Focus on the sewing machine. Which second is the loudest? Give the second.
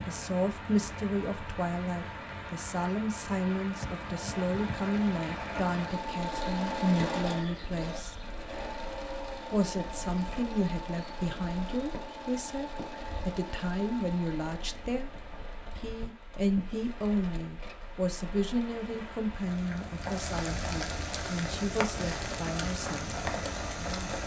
7 s.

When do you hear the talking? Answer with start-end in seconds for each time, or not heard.
0.1-8.2, 9.5-15.1, 15.8-23.1.